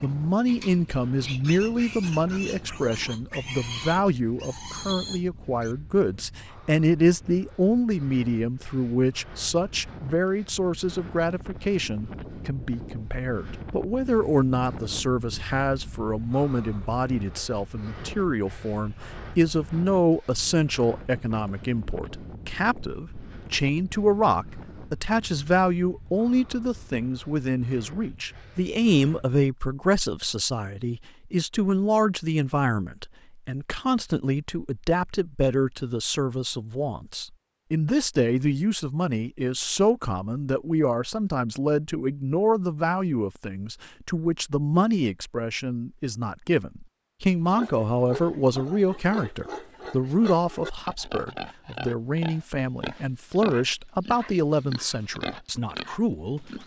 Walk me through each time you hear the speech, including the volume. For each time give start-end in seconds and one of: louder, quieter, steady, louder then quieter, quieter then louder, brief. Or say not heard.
0.0-56.5 steady.